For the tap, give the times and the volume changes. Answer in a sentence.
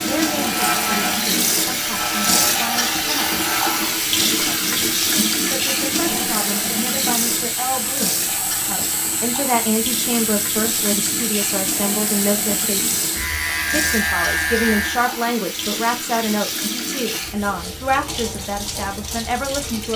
The tap can be heard from 0.0 to 19.9 s, getting quieter.